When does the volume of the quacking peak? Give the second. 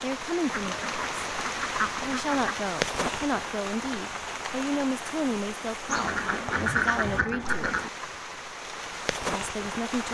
7 s.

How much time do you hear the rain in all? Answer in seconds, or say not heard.
10 s.